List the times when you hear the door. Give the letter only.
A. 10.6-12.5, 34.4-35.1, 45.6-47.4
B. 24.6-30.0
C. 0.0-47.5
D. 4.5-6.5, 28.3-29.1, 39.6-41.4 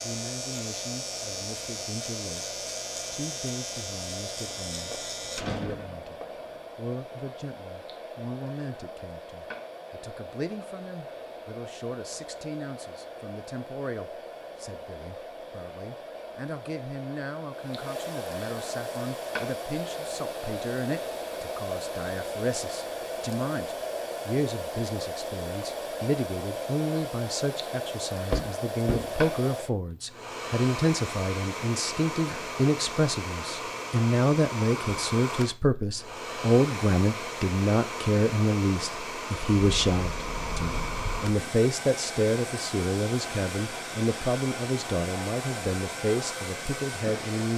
D.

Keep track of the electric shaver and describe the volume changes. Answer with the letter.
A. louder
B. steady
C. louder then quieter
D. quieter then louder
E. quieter
B.